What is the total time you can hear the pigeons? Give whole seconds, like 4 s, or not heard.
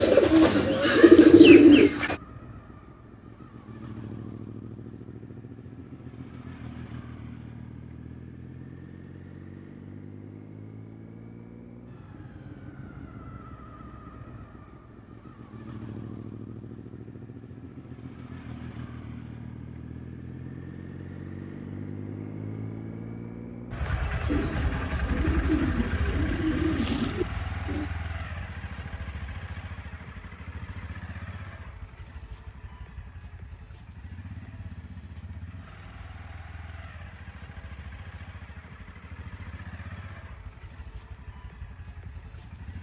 6 s.